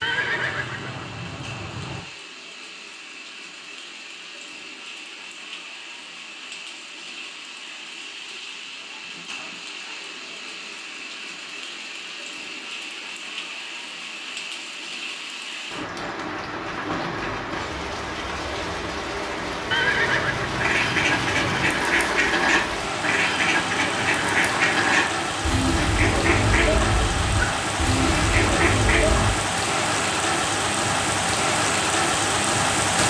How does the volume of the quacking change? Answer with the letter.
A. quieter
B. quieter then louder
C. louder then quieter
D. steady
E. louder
D.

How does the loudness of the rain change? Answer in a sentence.
The loudness of the rain goes up.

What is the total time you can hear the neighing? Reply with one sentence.
You can hear the neighing for 4 seconds altogether.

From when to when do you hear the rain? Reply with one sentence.
You can hear the rain from 0.0 to 33.0 s.